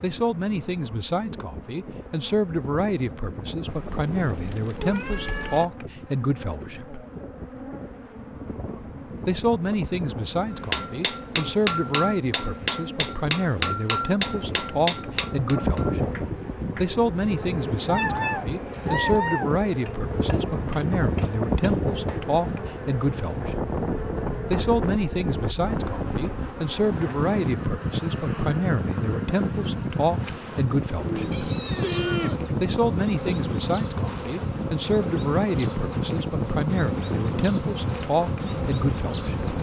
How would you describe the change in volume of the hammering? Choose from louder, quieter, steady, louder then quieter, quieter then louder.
quieter.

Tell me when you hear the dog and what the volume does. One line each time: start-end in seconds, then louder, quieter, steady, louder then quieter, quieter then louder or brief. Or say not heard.
not heard.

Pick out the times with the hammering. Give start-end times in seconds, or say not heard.
10.5-22.2.